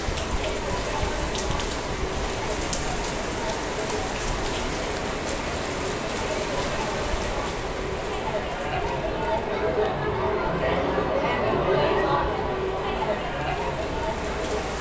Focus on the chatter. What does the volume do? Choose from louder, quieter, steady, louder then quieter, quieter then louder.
louder.